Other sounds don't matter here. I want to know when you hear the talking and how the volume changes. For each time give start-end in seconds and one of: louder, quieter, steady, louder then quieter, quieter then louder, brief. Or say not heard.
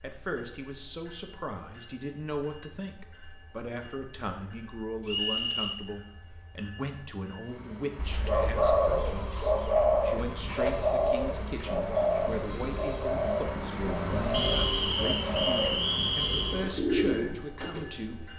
0.0-18.3 steady.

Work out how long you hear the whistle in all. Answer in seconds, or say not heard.
3 s.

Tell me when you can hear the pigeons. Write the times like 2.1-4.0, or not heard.
8.0-17.9.